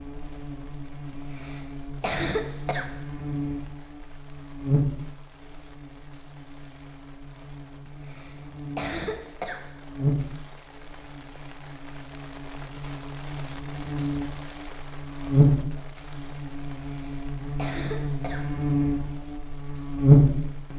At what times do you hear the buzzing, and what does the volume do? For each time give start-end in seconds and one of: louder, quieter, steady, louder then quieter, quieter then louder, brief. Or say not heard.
0.0-20.7 louder.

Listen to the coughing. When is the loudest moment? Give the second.
2 s.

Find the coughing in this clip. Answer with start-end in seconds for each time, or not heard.
1.1-2.9, 7.8-9.7, 16.9-18.4.